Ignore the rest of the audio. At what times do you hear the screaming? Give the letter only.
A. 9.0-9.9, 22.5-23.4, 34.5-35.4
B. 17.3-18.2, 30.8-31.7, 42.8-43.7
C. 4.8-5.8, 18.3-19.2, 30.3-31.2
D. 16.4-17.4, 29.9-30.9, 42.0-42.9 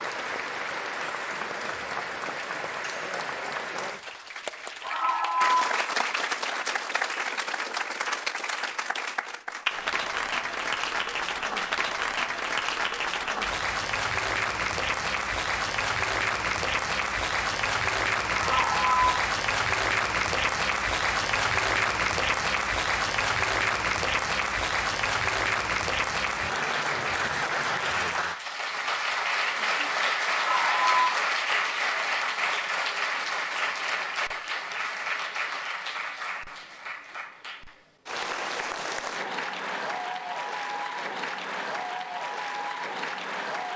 C.